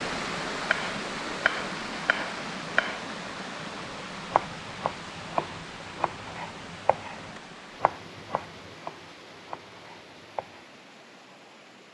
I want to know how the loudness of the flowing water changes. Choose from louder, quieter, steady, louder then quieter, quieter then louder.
quieter.